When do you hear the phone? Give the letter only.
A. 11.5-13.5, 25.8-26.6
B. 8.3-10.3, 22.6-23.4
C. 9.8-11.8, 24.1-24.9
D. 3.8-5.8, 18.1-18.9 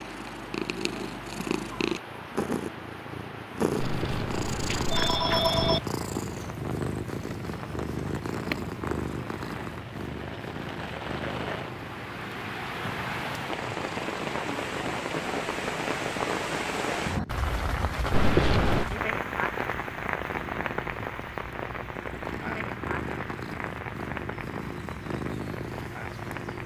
D.